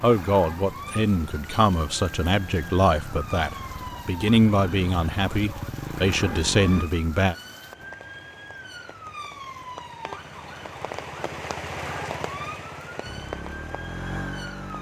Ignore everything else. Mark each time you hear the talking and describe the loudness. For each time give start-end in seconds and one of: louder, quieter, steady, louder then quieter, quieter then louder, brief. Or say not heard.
0.0-7.3 steady.